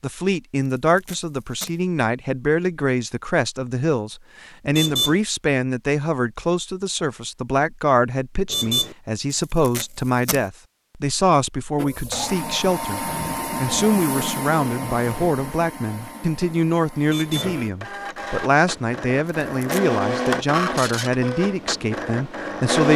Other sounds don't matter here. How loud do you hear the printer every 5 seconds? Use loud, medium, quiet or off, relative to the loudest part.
off, off, loud, medium, loud.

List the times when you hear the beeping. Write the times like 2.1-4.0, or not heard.
4.7-5.2, 8.5-8.9, 17.1-17.6.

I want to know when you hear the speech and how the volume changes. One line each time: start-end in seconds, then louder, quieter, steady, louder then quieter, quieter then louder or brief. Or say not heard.
0.0-22.9 steady.